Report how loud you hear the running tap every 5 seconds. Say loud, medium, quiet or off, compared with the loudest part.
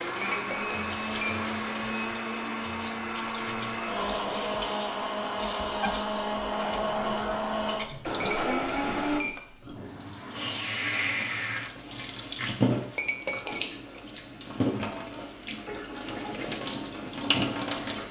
medium, medium, loud, loud.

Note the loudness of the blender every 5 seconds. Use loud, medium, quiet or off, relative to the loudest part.
loud, loud, off, off.